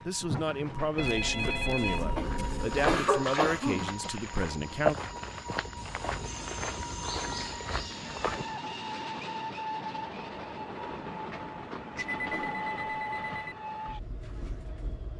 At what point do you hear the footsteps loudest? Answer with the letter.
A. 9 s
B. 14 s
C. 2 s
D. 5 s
D.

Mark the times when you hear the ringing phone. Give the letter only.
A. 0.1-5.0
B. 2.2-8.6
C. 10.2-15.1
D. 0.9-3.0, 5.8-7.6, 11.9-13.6
D.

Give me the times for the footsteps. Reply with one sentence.
You can hear the footsteps from 2.2 to 8.6 s.